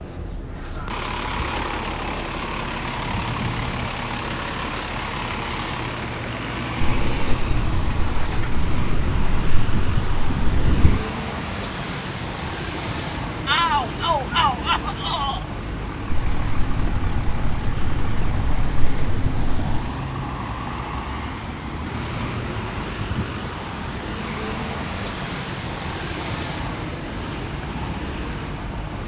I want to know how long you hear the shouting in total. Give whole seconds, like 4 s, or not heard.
2 s.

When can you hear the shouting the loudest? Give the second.
14 s.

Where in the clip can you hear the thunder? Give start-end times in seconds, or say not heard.
6.8-11.1, 16.1-19.9.